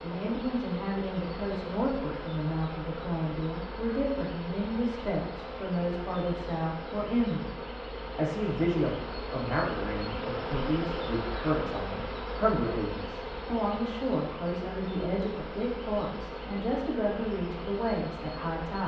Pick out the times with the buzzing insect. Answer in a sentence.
The buzzing insect can be heard from 0.0 to 18.8 s.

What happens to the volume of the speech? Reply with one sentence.
The loudness of the speech stays about the same.